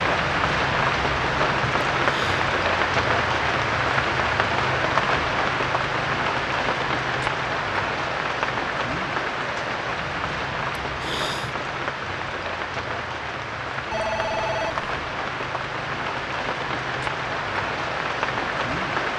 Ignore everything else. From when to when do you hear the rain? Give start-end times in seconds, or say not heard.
0.0-19.1.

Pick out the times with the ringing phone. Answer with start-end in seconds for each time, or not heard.
13.9-14.8.